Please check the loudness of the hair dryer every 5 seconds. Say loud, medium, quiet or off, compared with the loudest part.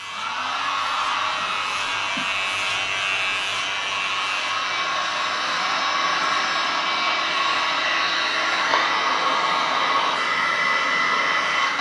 medium, loud, loud.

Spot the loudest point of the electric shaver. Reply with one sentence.
The loudest moment of the electric shaver is at 3 seconds.